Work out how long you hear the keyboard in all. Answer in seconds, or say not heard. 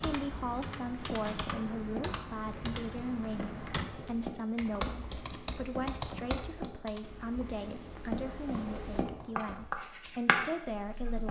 9 s.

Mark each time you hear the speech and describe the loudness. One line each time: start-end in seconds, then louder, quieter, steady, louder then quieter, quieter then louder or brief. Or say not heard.
0.0-11.2 steady.